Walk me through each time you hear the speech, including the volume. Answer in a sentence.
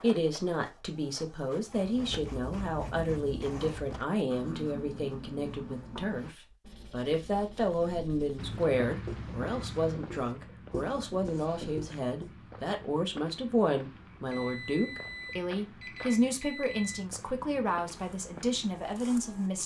You can hear the speech from 0.0 to 19.6 s, at a steady volume.